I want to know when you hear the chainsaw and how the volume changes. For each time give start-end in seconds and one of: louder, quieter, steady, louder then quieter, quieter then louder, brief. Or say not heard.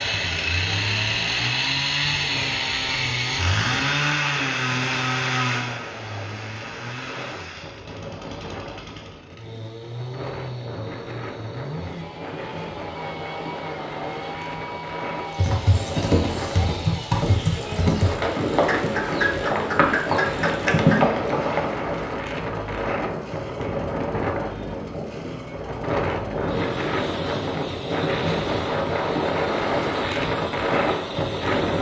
0.0-31.7 quieter.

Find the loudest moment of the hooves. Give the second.
21 s.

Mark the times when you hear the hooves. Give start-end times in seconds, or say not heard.
15.3-21.9.